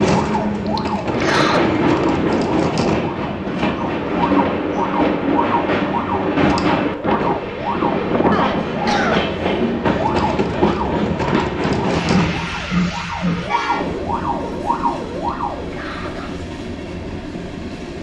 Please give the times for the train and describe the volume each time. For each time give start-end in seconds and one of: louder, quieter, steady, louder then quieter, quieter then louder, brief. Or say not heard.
0.0-17.9 quieter.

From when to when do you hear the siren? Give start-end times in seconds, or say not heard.
0.0-15.8.